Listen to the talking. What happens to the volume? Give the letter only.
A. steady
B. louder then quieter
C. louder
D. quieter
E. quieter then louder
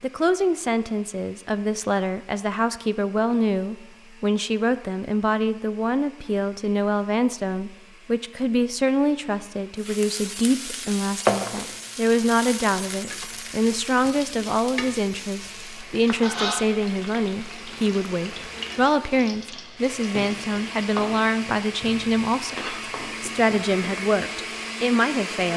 A.